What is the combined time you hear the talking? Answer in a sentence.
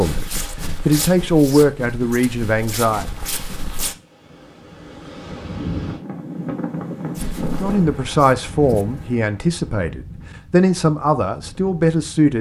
You can hear the talking for 8 seconds altogether.